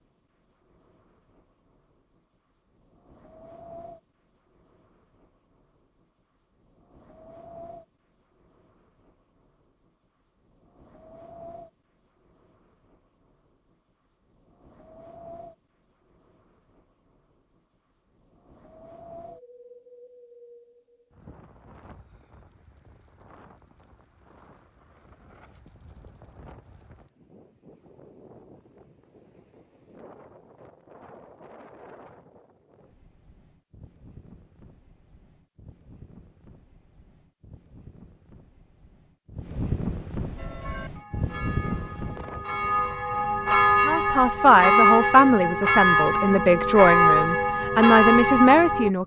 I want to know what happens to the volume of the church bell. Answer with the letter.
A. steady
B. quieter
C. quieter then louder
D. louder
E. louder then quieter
D.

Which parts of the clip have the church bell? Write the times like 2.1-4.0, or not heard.
40.4-48.9.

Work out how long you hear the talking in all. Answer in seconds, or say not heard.
5 s.